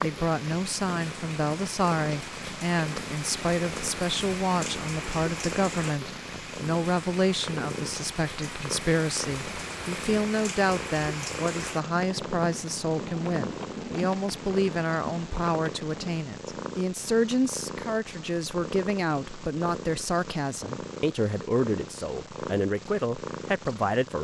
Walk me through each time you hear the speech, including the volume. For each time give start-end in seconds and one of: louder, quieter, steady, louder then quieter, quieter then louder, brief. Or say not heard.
0.0-24.2 steady.